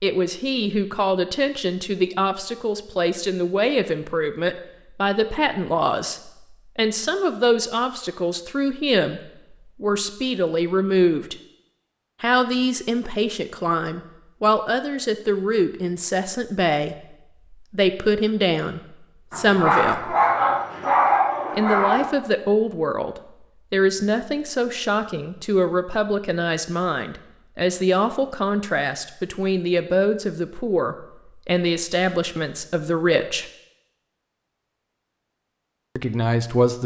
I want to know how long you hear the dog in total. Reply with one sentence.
You can hear the dog for 3 seconds altogether.